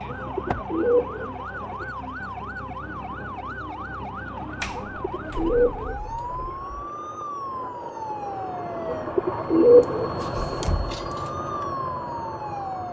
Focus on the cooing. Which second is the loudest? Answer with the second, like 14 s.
10 s.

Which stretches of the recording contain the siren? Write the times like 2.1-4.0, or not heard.
0.0-9.1, 11.2-12.8.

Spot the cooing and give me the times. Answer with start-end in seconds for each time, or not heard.
0.1-1.9, 4.8-6.5, 8.8-10.7.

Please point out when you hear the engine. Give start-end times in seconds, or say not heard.
0.0-12.8.